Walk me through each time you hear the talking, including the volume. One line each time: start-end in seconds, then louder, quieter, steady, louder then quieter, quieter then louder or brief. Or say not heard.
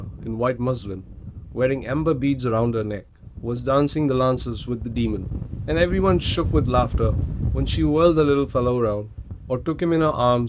0.0-10.4 steady.